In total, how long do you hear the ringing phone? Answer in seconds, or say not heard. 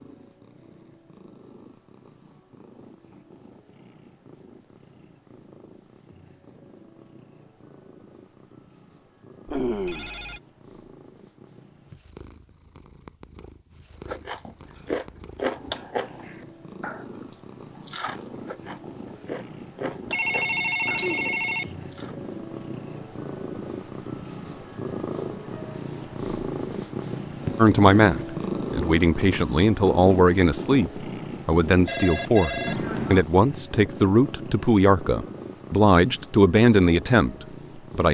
4 s.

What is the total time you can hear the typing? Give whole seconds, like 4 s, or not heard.
not heard.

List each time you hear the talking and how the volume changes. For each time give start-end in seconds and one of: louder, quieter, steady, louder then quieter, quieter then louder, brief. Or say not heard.
27.6-38.0 steady.